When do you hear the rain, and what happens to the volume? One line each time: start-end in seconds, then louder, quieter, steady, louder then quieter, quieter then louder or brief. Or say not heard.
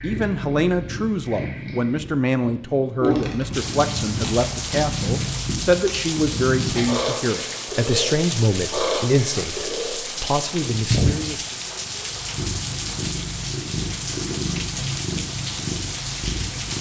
3.5-16.7 steady.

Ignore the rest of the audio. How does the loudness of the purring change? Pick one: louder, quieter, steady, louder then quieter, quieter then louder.
steady.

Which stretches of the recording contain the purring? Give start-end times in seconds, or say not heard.
0.0-16.7.